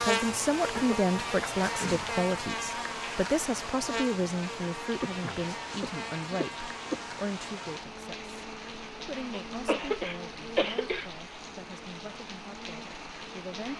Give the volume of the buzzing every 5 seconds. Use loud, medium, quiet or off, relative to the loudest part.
loud, medium, quiet.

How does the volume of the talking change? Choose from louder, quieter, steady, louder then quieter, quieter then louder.
quieter.